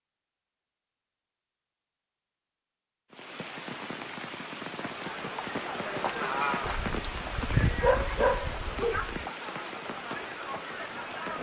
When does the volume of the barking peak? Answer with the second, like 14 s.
8 s.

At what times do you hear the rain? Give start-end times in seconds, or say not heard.
3.1-11.3.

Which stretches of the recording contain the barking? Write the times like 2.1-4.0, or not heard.
6.6-9.2.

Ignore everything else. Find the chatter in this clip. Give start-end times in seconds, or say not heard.
4.8-11.3.